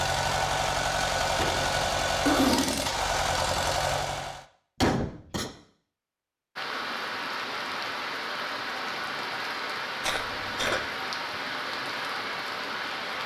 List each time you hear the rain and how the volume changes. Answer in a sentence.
The rain can be heard from 6.5 to 13.2 s, at a steady volume.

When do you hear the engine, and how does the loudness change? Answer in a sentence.
The engine can be heard from 0.0 to 4.5 s, at a steady volume.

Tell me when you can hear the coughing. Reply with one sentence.
You can hear the coughing from 1.4 to 2.9 s, from 4.8 to 5.5 s and from 10.0 to 10.8 s.